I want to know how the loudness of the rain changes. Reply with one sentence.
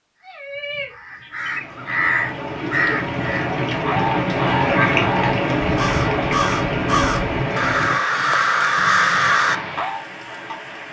The loudness of the rain goes up, then down.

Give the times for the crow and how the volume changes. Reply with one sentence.
You can hear the crow from 0.2 to 10.1 s, getting louder.